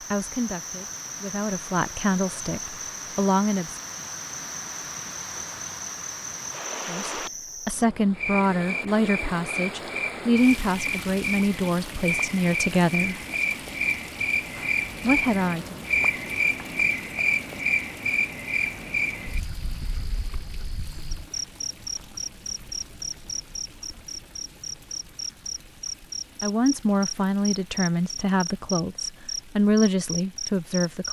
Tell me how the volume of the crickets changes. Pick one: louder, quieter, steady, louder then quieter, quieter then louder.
louder then quieter.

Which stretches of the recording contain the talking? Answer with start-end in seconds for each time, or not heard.
0.1-3.8, 6.8-13.2, 15.0-15.8, 26.4-31.0.